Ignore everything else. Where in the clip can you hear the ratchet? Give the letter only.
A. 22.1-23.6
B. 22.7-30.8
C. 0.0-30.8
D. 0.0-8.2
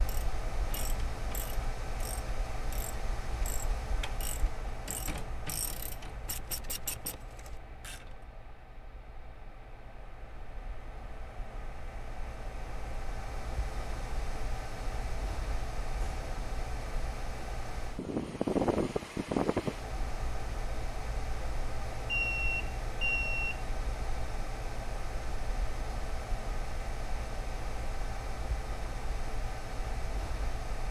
D.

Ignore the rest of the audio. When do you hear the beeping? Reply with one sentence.
You can hear the beeping from 22.1 to 23.6 s.